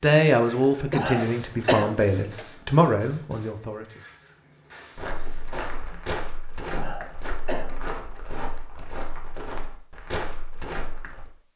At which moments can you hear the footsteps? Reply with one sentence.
You can hear the footsteps from 5.0 to 11.2 s.